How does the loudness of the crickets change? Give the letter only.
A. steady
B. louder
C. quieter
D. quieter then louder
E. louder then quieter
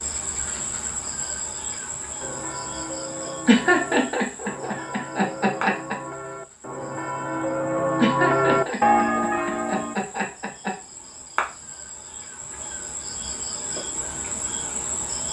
D.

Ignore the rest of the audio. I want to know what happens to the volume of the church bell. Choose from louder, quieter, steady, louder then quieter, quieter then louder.
louder.